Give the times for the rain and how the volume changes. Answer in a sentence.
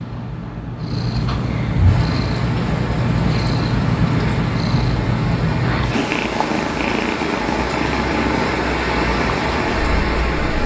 You can hear the rain from 1.9 to 10.6 s, getting louder.